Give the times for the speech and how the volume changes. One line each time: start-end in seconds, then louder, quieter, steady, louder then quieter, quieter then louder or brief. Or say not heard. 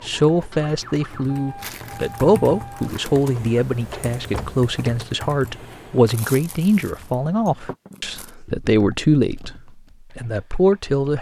0.0-11.1 steady.